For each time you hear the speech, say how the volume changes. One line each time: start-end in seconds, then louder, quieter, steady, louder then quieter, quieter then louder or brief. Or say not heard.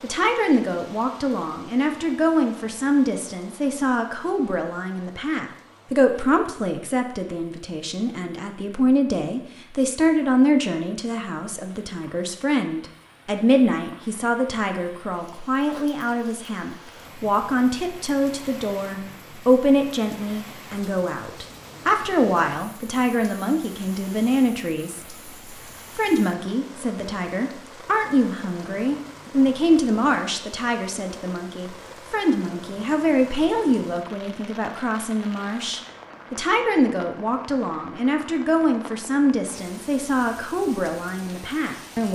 0.0-25.1 steady
25.9-42.1 steady.